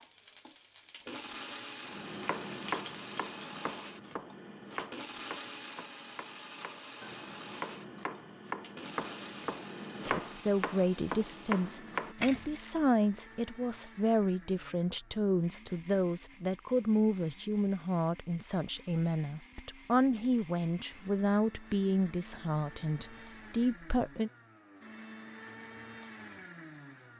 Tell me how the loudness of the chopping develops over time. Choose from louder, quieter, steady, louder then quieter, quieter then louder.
quieter then louder.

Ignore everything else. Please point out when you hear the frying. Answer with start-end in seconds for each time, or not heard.
0.0-3.4.